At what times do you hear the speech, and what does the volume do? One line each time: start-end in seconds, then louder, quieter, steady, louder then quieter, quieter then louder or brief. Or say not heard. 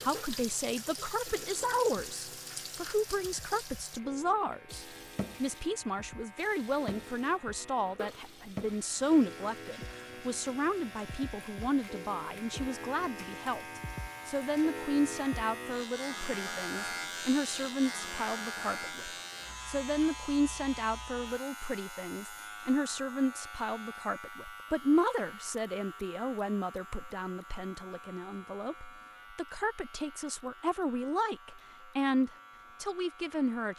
0.0-33.7 steady.